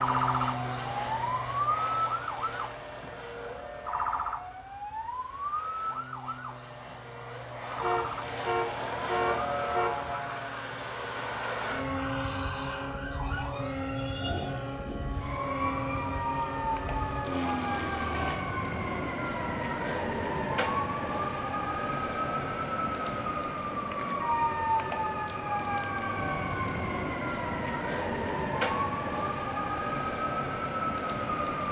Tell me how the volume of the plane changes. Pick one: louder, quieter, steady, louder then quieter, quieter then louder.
quieter then louder.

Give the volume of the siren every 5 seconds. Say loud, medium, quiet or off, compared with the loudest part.
loud, medium, medium, loud, loud, loud, loud.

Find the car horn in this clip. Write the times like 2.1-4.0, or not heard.
7.8-10.2.